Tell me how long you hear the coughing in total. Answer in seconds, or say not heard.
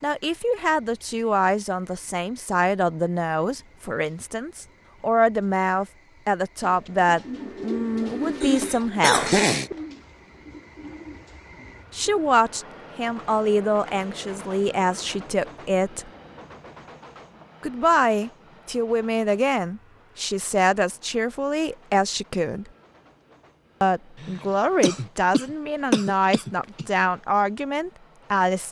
4 s.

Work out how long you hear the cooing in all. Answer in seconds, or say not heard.
6 s.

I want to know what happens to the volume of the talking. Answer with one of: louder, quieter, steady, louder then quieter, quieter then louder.
steady.